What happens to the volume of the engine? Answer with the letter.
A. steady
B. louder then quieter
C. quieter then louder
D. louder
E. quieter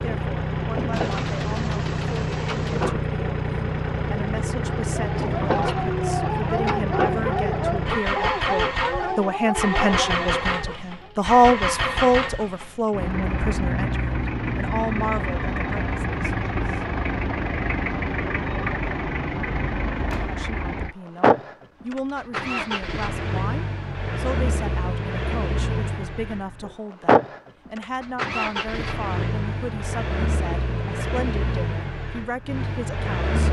A.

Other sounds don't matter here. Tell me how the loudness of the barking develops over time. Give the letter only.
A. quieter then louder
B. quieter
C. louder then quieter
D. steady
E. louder
D.